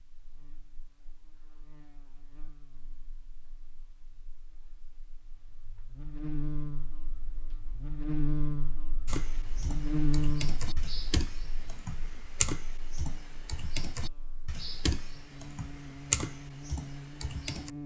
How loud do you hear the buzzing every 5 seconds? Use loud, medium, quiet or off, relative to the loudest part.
quiet, loud, loud, medium.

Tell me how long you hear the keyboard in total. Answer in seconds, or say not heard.
9 s.